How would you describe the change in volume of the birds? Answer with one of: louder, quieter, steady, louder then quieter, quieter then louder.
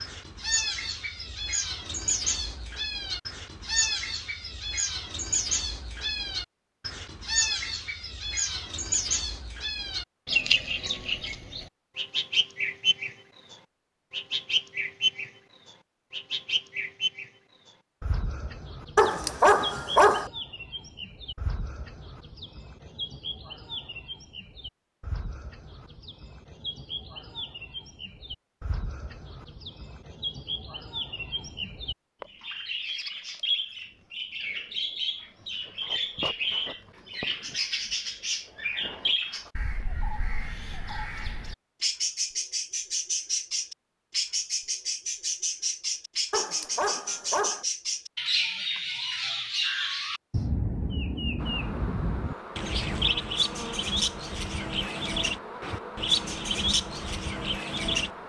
quieter then louder.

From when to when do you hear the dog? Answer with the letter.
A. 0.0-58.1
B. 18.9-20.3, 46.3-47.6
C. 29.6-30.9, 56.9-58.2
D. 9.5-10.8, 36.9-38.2
B.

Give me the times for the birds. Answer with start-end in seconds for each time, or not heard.
0.0-58.1.